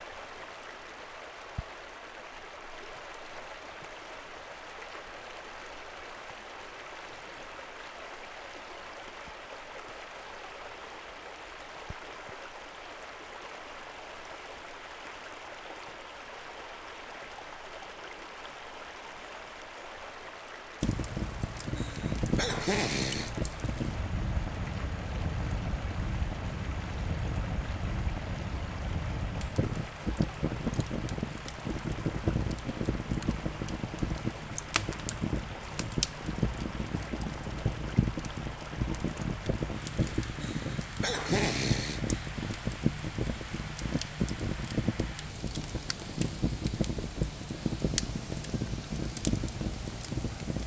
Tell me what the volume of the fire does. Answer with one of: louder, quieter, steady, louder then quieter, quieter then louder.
steady.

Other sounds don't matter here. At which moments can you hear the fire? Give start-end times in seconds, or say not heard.
20.8-50.6.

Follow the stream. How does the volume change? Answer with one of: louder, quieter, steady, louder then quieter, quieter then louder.
steady.